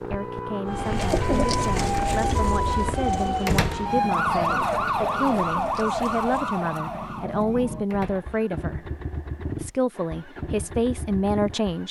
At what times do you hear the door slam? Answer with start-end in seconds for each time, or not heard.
3.5-4.0, 7.9-8.3.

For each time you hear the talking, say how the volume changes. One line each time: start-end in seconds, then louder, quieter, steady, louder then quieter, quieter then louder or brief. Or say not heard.
0.0-8.8 louder
9.6-11.8 brief.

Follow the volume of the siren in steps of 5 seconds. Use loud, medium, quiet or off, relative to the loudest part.
loud, loud, off.